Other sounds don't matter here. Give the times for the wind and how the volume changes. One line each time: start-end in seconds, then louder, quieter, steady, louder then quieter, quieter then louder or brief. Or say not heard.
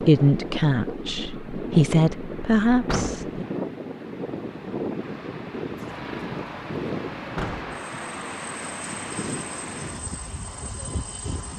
0.0-11.5 steady.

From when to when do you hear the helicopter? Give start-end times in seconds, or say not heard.
5.8-11.5.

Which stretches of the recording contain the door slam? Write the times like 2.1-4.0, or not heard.
2.9-3.4, 7.3-7.8.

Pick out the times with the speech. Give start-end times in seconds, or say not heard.
0.0-3.5.